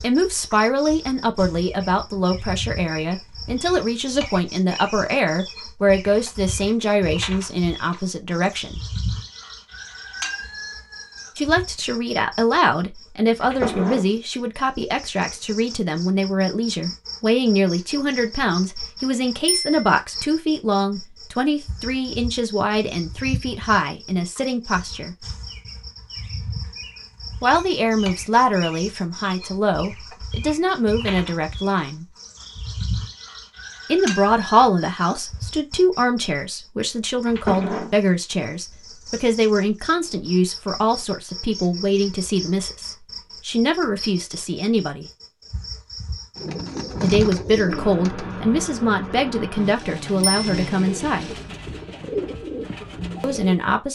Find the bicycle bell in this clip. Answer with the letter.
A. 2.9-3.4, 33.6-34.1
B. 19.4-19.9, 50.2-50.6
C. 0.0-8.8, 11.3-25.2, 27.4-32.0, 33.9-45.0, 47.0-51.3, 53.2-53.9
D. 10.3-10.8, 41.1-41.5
B.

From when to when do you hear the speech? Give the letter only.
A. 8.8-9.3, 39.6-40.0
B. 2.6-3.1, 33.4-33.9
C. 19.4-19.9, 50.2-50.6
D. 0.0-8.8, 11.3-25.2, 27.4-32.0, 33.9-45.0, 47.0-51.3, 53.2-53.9
D.